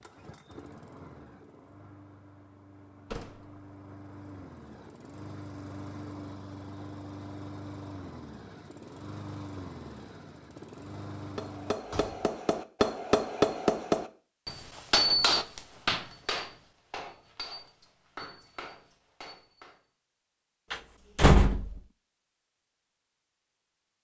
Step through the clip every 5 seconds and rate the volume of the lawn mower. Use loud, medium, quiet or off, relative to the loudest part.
medium, loud, loud, off, off.